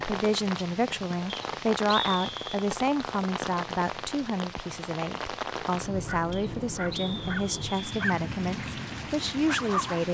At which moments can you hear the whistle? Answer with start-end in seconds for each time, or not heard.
1.2-2.6, 6.3-7.8.